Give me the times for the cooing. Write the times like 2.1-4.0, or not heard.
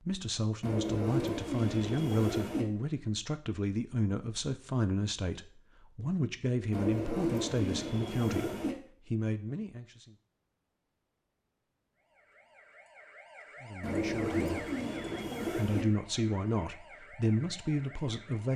0.6-2.6, 6.7-8.8, 13.8-15.8.